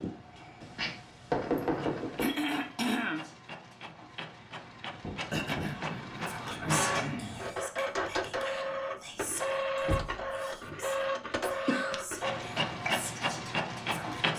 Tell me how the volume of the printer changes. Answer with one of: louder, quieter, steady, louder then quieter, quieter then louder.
louder.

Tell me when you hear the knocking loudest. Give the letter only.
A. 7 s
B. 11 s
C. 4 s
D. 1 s
D.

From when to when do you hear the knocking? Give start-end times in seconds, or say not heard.
0.6-2.3, 5.0-6.8, 9.8-10.3.